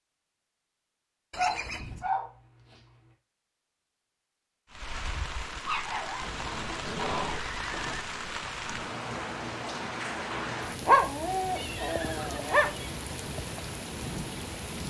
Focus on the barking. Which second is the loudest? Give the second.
11 s.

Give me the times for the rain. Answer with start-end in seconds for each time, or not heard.
4.7-14.8.